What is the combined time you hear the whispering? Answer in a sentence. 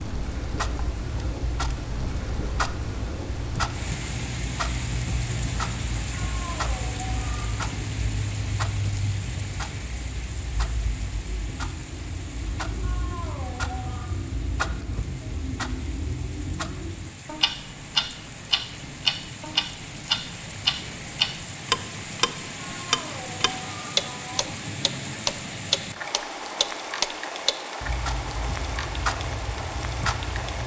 You can't hear the whispering here.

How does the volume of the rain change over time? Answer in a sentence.
The volume of the rain goes down, then up.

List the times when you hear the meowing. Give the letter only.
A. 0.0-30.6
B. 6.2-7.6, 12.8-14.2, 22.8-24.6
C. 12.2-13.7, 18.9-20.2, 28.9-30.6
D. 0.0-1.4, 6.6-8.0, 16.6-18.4
B.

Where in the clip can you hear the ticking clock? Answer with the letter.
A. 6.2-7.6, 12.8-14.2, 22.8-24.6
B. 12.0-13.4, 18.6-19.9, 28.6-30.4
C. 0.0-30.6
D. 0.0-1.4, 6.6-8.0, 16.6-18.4
C.